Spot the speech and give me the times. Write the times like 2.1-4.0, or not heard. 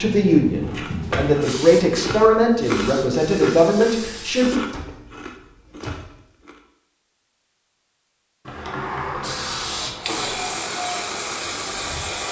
0.0-4.6.